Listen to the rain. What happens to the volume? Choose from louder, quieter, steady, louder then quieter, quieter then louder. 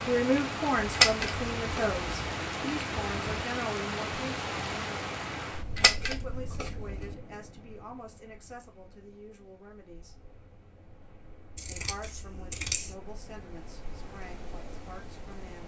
quieter then louder.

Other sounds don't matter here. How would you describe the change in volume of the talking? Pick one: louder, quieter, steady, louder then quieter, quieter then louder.
quieter.